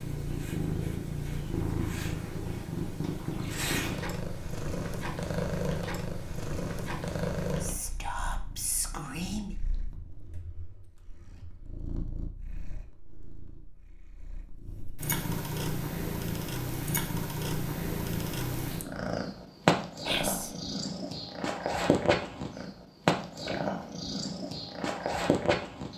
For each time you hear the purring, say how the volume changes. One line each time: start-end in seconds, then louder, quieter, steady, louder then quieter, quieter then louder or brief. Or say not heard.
0.0-25.9 quieter then louder.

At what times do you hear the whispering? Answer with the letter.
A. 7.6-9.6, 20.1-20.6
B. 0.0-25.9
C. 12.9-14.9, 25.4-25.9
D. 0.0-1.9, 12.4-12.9
A.